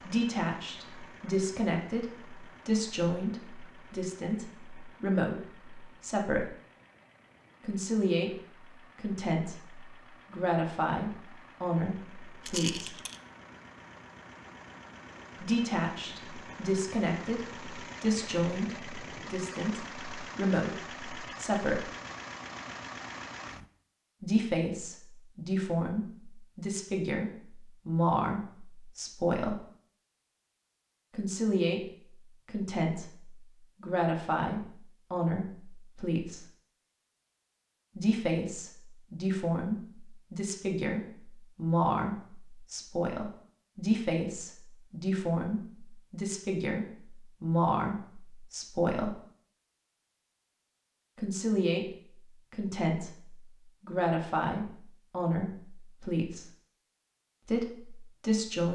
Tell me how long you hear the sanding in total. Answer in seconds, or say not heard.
not heard.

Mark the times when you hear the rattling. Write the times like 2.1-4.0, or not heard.
12.4-13.2.